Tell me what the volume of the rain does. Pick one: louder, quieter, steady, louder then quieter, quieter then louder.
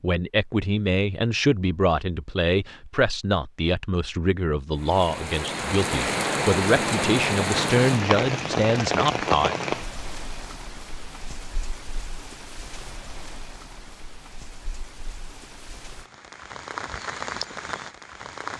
quieter then louder.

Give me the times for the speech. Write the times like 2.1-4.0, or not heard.
0.0-9.6.